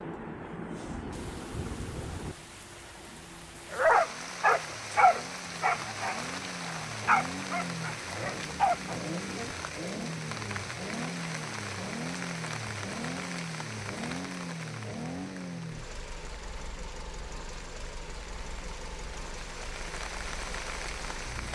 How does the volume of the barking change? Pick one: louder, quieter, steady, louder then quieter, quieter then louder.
quieter then louder.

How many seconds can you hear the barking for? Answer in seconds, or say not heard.
6 s.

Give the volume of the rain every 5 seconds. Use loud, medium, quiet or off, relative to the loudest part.
loud, loud, loud, medium, loud.